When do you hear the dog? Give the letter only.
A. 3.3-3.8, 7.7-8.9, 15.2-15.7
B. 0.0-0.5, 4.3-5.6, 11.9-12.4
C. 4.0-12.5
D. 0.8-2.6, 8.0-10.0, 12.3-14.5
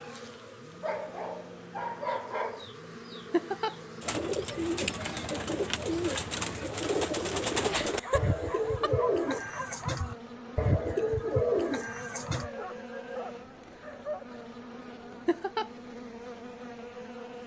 D.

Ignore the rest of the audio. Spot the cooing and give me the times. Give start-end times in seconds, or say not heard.
4.0-12.5.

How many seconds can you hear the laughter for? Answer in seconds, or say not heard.
2 s.